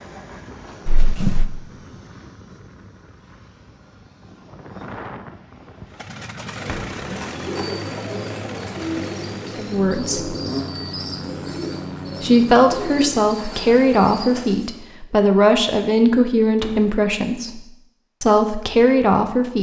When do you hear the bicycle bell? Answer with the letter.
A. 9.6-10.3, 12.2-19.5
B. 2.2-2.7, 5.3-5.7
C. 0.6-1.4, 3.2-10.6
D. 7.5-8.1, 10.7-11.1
D.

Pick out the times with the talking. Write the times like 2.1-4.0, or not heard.
9.6-10.3, 12.2-19.5.